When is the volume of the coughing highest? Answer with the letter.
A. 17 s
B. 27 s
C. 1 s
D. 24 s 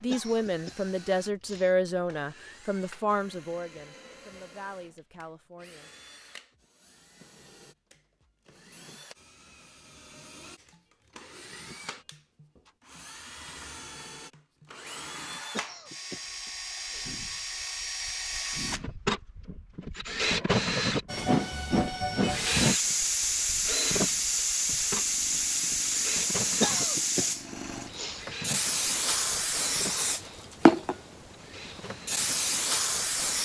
B.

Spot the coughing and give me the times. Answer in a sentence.
The coughing can be heard from 0.1 to 1.7 s, from 15.5 to 17.1 s and from 26.6 to 28.2 s.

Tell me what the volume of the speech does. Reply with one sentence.
The volume of the speech goes down.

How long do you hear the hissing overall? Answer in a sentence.
The hissing can be heard for 12 seconds in total.